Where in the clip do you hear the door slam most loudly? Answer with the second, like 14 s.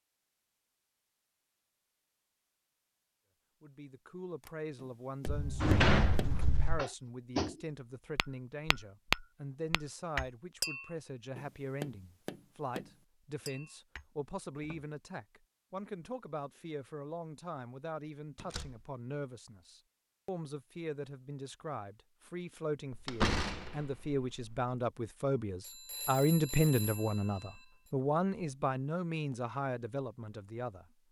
6 s.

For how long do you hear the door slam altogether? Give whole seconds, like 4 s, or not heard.
4 s.